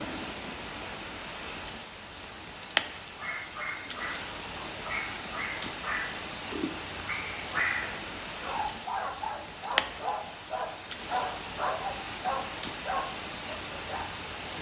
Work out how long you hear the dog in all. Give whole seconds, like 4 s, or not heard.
11 s.